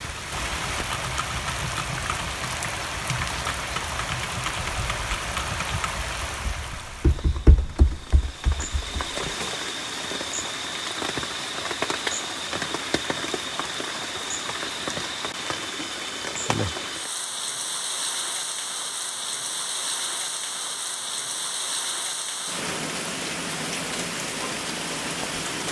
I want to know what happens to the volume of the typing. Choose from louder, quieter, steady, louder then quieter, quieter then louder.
louder.